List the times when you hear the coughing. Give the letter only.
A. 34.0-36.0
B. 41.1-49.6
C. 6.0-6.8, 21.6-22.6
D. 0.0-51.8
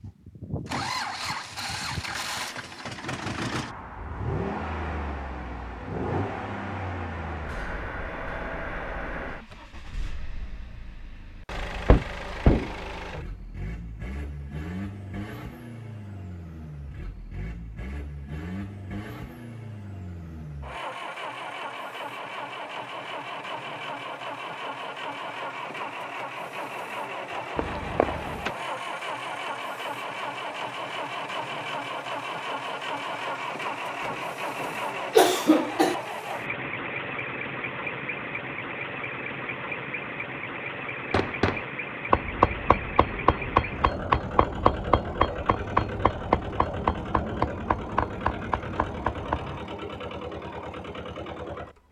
A.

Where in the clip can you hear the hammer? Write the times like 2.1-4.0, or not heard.
41.1-49.6.